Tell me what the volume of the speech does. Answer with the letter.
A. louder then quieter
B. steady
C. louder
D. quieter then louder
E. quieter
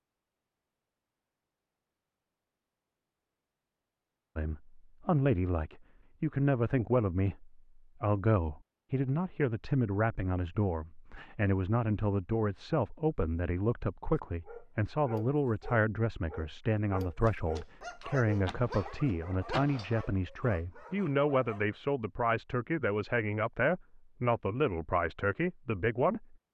B.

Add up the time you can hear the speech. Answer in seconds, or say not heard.
22 s.